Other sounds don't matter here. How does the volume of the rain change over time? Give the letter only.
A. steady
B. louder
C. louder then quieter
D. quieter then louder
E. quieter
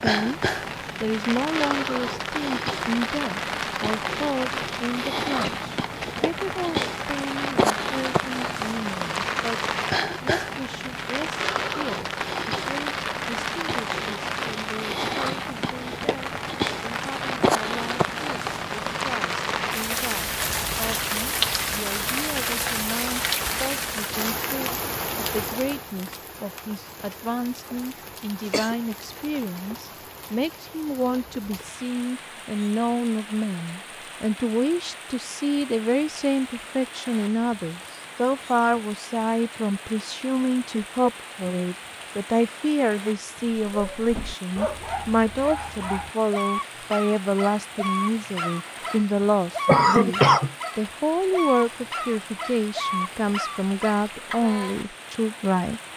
E.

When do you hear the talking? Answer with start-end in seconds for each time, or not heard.
0.0-0.4, 1.0-55.8.